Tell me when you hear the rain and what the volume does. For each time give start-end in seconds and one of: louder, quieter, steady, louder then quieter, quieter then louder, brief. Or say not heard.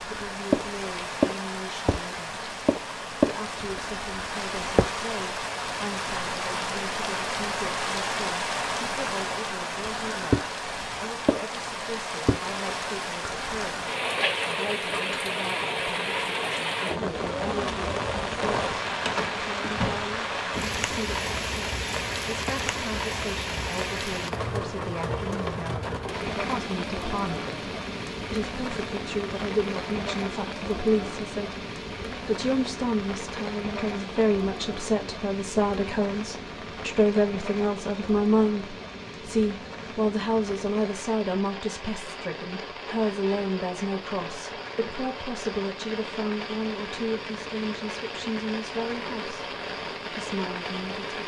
0.0-51.2 quieter.